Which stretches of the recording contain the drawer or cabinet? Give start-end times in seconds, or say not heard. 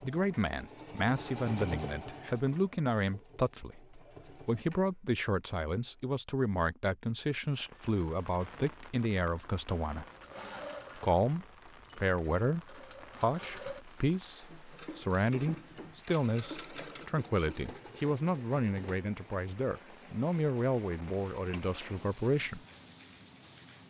not heard.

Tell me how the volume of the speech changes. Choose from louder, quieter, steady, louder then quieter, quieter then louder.
steady.